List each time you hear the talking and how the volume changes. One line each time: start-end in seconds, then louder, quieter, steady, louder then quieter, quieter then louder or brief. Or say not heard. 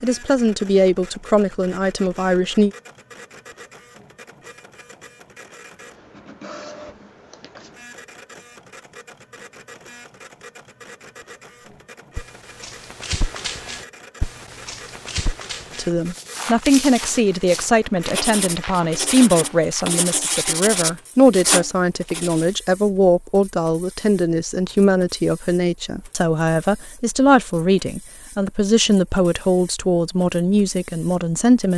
0.0-2.7 brief
15.8-31.7 steady.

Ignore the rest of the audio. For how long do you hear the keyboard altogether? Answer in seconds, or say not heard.
not heard.